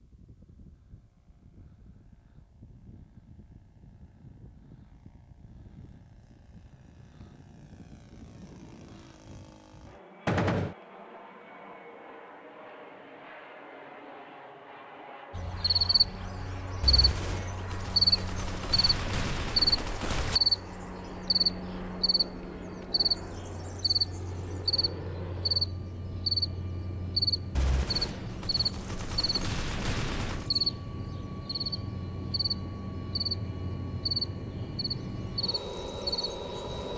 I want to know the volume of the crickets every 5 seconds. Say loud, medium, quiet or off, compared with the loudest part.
off, off, off, loud, loud, loud, medium, medium.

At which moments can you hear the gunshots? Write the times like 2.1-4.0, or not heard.
10.2-10.8, 16.8-20.4, 27.6-30.5.